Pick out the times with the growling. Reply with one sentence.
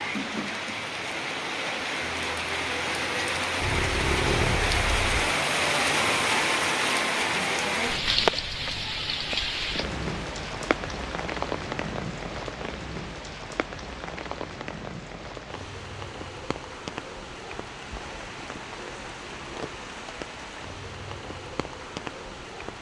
You can hear the growling from 3.6 to 5.2 s.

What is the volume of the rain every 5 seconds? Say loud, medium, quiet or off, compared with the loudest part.
loud, loud, medium, quiet, quiet.